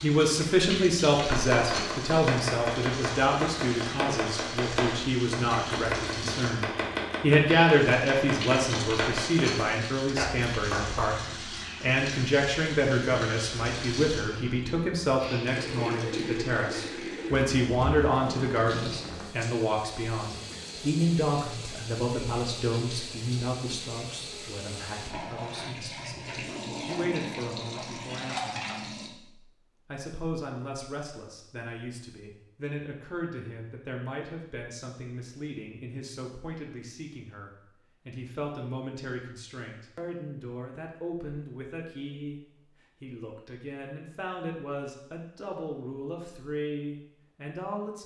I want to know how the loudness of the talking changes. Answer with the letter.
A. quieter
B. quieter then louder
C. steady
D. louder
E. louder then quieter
A.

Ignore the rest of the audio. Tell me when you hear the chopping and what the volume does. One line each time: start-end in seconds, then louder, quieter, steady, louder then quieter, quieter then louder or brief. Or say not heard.
1.3-11.2 steady.